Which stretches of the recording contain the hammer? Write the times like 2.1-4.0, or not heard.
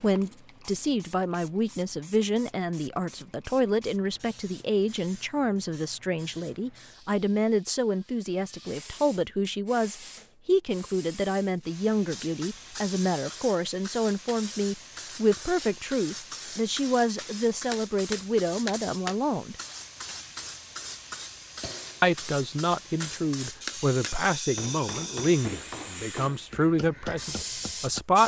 17.1-19.1, 23.0-28.0.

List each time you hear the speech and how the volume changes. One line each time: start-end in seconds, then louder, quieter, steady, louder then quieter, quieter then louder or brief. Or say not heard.
0.0-19.6 steady
22.0-28.2 steady.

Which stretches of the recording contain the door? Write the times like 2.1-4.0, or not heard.
not heard.